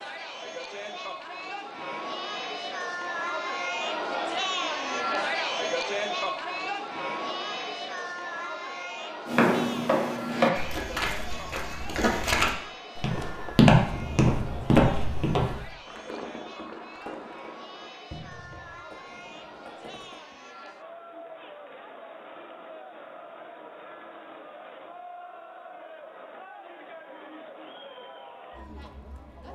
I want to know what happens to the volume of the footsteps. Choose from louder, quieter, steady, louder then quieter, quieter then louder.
quieter then louder.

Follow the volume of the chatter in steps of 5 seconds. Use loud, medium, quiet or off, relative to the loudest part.
loud, loud, medium, quiet, quiet, quiet.